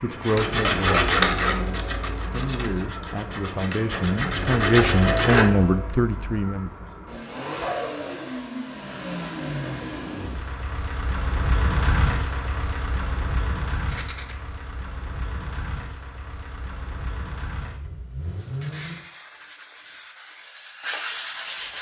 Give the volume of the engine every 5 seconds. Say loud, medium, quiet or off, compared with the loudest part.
medium, loud, loud, medium, off.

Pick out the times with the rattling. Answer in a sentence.
The rattling can be heard from 13.8 to 14.3 s.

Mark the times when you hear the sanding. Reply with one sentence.
You can hear the sanding from 0.1 to 5.8 s and from 18.2 to 21.7 s.